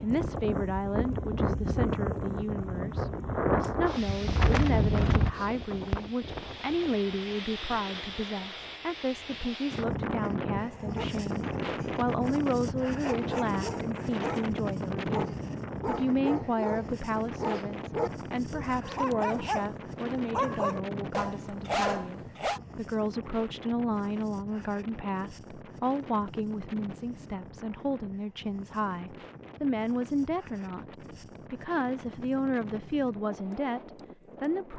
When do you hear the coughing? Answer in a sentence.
The coughing can't be heard in this clip.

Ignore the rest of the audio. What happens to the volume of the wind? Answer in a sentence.
The loudness of the wind goes down.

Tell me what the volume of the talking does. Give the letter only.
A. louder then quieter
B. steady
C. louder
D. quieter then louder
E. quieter
B.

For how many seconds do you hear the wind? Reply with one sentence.
You can hear the wind for 35 seconds altogether.